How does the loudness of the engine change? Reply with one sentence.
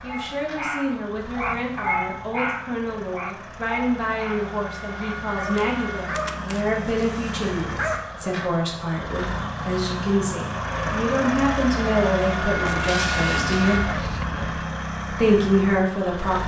The volume of the engine goes up.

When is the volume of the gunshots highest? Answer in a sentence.
The volume of the gunshots peaks at 13 seconds.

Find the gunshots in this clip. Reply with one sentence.
You can hear the gunshots from 12.7 to 14.7 s.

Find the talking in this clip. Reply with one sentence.
You can hear the talking from 0.0 to 13.8 s and from 15.1 to 16.4 s.